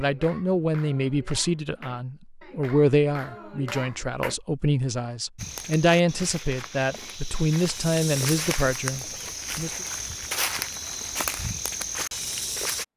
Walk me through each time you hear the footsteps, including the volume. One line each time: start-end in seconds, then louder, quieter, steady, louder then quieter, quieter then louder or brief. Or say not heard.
5.3-12.8 louder.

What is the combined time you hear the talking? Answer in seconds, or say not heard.
10 s.